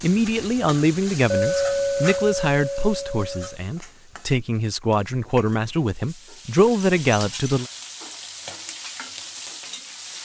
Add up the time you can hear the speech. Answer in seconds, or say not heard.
8 s.